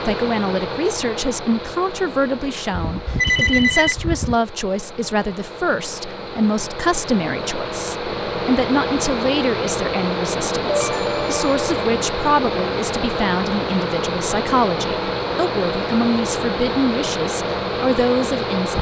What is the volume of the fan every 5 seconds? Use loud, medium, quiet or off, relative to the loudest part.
medium, loud, loud, loud.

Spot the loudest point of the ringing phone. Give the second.
3 s.